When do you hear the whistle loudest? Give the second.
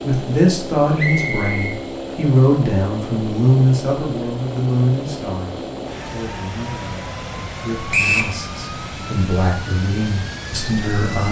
8 s.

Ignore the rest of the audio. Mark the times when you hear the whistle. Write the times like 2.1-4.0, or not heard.
0.9-1.8, 7.9-8.3.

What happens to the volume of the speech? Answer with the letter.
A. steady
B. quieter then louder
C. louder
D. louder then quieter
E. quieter
B.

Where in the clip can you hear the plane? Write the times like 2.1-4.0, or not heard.
0.0-11.2.